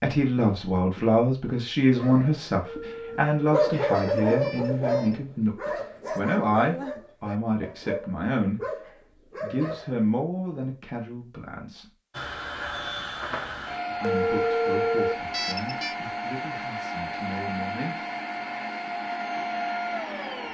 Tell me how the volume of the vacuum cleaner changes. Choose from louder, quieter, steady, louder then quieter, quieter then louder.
steady.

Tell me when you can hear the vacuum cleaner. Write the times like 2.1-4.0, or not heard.
12.1-20.4.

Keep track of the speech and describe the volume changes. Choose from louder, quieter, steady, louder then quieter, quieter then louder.
quieter.